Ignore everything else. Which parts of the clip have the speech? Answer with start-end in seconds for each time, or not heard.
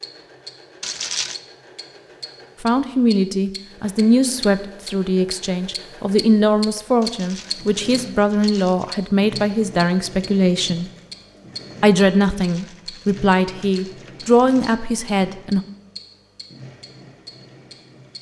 2.6-10.9, 11.8-15.6.